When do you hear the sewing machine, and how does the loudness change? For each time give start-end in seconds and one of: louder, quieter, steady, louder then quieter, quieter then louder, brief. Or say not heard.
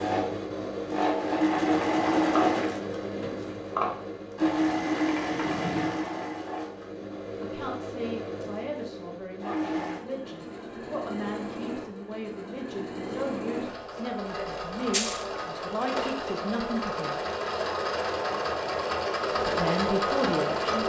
0.0-20.8 quieter then louder.